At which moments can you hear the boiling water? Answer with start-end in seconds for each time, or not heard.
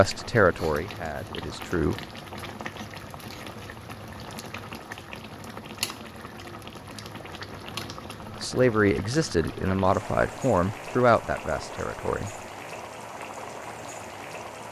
0.0-14.6.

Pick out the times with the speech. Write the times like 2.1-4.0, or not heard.
0.0-1.9, 8.4-12.3.